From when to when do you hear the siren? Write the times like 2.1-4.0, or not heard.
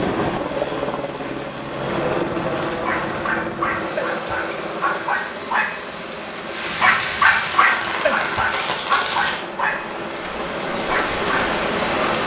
not heard.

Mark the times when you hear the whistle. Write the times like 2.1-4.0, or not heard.
not heard.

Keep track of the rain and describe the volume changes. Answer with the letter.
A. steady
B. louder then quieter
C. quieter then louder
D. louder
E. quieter
D.